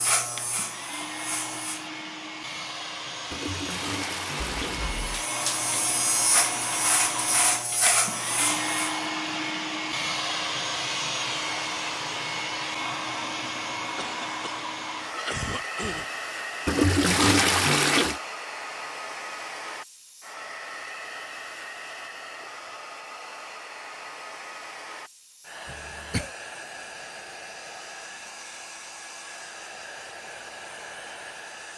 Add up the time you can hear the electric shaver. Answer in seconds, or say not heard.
6 s.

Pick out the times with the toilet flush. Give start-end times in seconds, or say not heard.
3.3-4.9, 16.6-18.2.